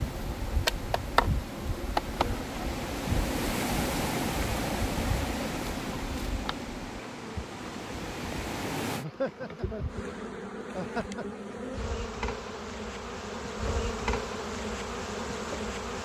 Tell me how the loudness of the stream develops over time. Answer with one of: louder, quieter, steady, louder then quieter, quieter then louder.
louder then quieter.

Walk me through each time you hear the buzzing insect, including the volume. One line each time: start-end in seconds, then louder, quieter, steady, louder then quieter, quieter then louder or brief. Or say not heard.
0.0-15.9 quieter then louder.